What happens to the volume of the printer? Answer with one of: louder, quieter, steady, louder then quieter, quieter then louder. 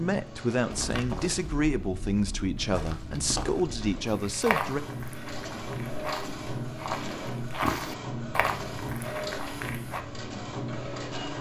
louder.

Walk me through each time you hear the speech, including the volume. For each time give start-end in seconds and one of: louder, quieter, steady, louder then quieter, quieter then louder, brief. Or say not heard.
0.0-4.8 steady.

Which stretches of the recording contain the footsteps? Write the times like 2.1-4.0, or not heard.
0.7-10.0.